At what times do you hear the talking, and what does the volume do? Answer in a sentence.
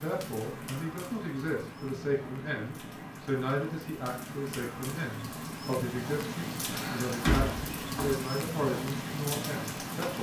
The talking can be heard from 0.0 to 10.1 s, at a steady volume.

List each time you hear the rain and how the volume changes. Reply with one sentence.
You can hear the rain from 0.0 to 10.1 s, getting louder.